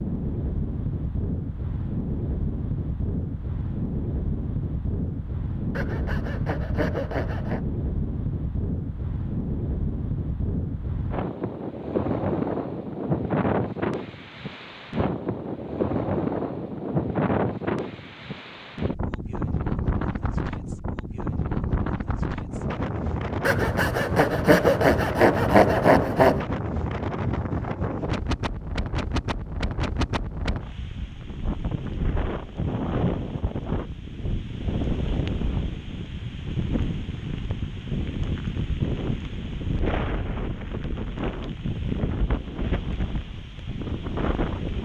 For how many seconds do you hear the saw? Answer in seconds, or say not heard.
5 s.